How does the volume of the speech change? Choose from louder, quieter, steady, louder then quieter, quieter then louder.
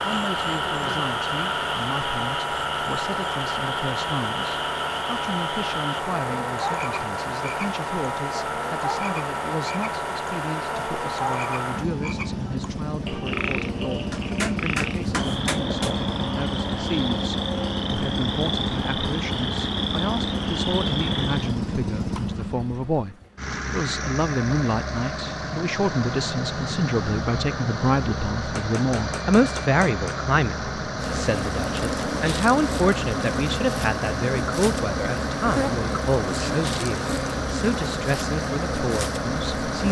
louder.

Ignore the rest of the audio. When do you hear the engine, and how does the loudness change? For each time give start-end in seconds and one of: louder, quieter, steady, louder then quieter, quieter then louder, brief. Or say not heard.
0.0-39.8 steady.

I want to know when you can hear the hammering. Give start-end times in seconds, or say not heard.
14.1-15.9, 28.6-30.1.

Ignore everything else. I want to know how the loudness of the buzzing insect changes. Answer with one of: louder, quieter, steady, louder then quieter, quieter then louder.
steady.